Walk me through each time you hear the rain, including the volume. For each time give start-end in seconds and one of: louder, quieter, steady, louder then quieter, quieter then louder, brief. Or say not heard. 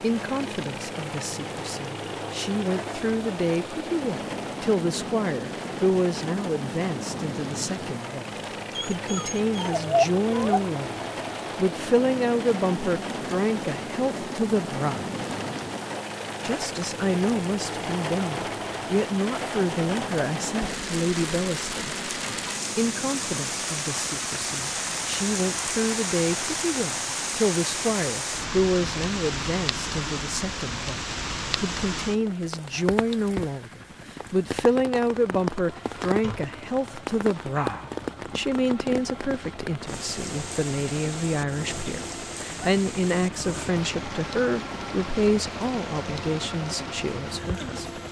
0.0-48.0 louder then quieter.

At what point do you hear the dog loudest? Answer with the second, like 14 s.
10 s.